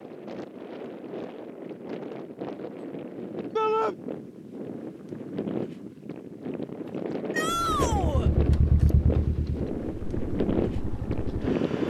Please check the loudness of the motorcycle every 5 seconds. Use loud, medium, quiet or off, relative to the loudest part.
off, loud, medium.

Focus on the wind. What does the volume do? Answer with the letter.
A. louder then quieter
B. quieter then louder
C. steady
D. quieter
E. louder
E.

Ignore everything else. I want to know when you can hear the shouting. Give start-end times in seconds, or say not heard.
3.5-4.0, 7.3-8.3.